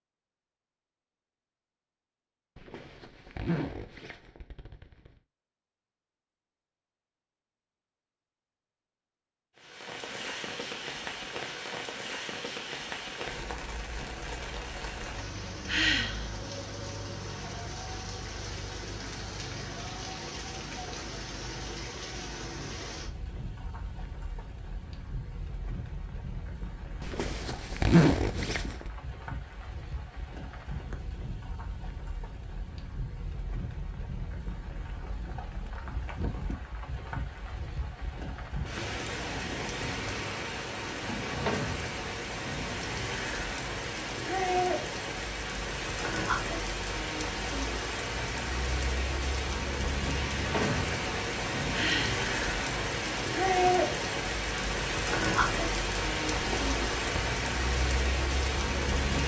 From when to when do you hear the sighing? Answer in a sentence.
You can hear the sighing from 15.7 to 16.3 s and from 51.7 to 52.2 s.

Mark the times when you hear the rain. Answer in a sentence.
The rain can be heard from 9.6 to 59.2 s.